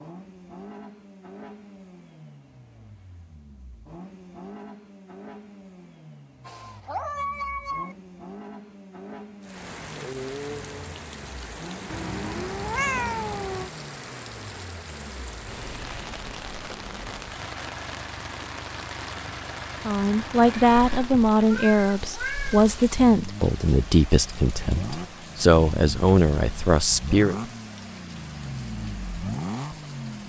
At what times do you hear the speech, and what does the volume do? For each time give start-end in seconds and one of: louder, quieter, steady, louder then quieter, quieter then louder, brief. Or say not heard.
19.9-27.4 steady.